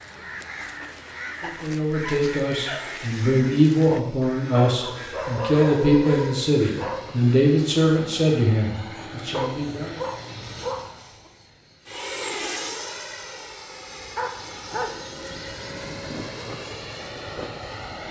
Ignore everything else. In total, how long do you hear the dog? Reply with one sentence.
The dog can be heard for 8 seconds in total.